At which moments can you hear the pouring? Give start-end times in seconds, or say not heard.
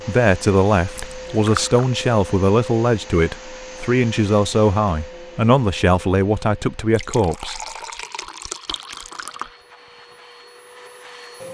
0.9-1.9, 6.9-9.6.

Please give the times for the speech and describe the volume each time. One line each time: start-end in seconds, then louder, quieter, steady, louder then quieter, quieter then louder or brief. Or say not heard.
0.1-7.6 steady.